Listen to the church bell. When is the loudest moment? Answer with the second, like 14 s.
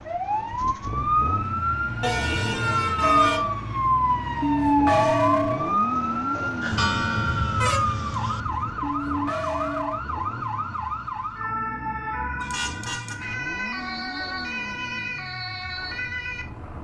5 s.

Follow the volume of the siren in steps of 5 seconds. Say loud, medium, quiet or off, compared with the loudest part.
loud, loud, medium, medium.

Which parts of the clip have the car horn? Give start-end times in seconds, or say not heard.
2.0-3.4, 6.7-8.7, 12.3-13.2.